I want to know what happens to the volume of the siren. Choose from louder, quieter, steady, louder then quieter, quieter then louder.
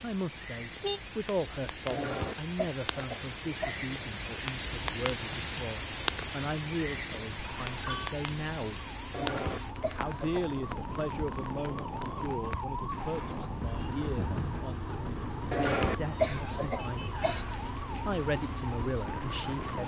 louder.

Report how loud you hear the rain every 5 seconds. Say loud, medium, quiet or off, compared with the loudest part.
loud, loud, medium, medium.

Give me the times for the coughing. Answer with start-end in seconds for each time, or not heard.
1.9-3.9, 9.1-10.5, 15.5-17.4.